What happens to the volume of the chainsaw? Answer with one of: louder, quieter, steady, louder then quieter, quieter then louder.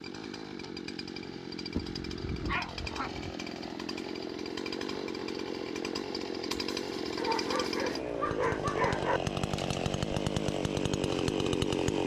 louder.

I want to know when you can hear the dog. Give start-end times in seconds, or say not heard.
1.8-3.3, 7.2-9.2.